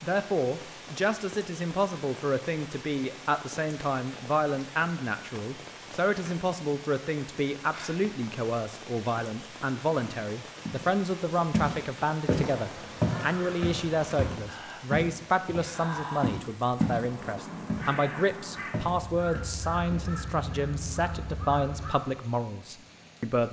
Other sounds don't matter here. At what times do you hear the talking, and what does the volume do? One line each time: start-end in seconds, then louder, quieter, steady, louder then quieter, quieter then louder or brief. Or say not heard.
0.0-23.4 steady.